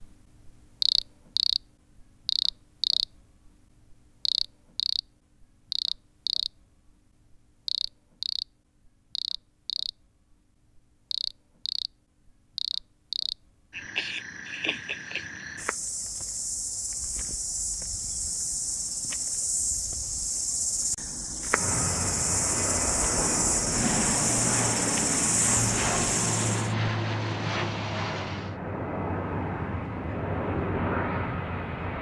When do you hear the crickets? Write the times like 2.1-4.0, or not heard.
0.0-26.7.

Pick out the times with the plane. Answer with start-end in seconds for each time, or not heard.
21.5-31.9.